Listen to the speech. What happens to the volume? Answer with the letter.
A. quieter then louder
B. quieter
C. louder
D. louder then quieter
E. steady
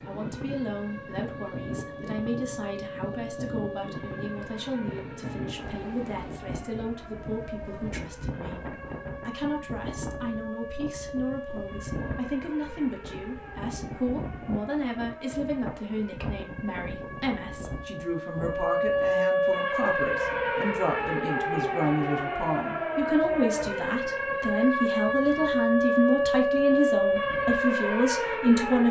C.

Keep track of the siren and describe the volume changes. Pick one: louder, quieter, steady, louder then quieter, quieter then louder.
louder.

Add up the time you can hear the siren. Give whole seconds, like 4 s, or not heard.
29 s.